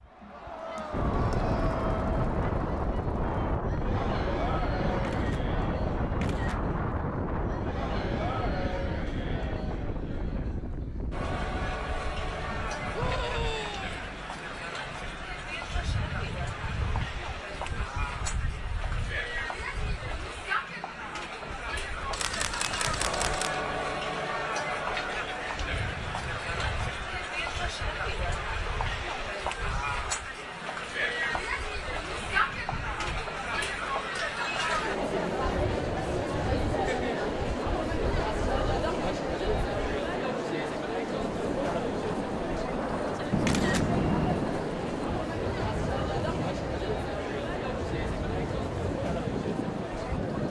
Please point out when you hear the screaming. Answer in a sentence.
You can hear the screaming from 12.9 to 14.1 s.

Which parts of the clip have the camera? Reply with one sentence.
The camera can be heard from 4.9 to 6.8 s, from 22.1 to 23.6 s and from 43.3 to 44.5 s.